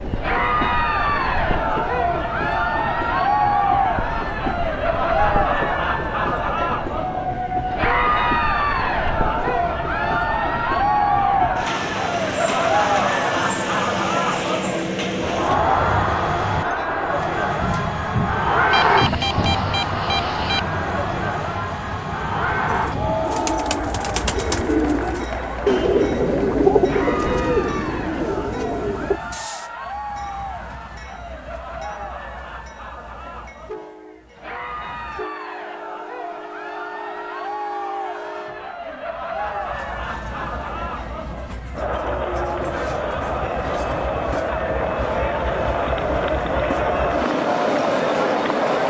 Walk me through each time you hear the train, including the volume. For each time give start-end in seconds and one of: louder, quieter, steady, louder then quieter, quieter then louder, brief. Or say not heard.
0.0-48.8 quieter then louder.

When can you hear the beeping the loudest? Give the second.
19 s.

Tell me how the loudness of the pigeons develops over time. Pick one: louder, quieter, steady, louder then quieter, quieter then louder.
louder then quieter.